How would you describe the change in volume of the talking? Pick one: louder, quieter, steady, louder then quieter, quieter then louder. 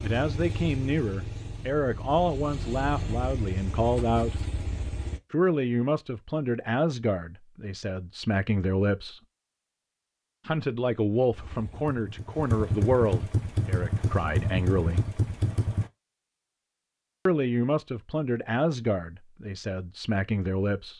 steady.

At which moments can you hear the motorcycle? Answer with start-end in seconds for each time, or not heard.
0.0-5.2, 11.3-15.9.